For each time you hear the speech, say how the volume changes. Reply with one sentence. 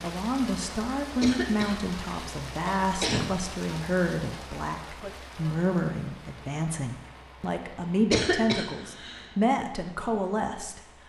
The speech can be heard from 0.0 to 10.8 s, at a steady volume.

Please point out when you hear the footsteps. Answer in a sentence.
You can't hear the footsteps here.